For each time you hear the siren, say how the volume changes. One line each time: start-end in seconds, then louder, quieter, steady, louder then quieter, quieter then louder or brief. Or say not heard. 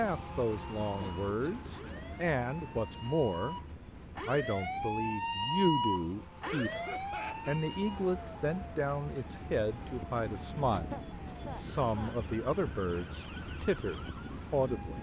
0.2-14.9 louder then quieter.